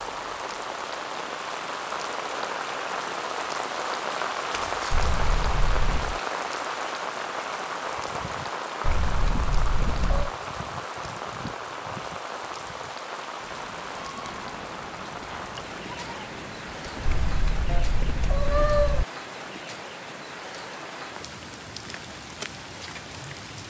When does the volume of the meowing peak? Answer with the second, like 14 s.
19 s.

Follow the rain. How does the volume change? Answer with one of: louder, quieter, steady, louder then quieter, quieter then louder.
quieter.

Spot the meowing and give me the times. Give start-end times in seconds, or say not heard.
4.9-6.2, 8.8-10.3, 17.0-19.1.